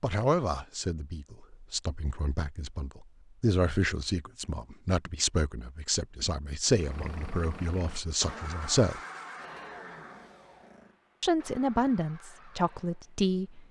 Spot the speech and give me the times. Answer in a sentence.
You can hear the speech from 0.0 to 9.0 s and from 11.2 to 13.6 s.